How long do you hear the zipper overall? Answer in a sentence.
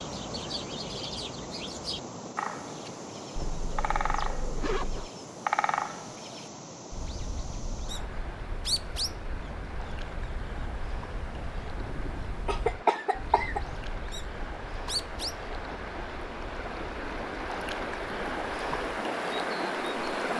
You can hear the zipper for 2 seconds altogether.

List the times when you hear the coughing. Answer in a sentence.
The coughing can be heard from 11.9 to 13.6 s.